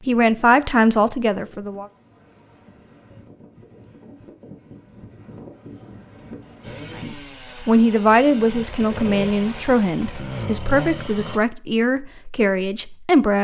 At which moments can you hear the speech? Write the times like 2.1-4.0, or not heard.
0.1-1.9, 7.0-13.3.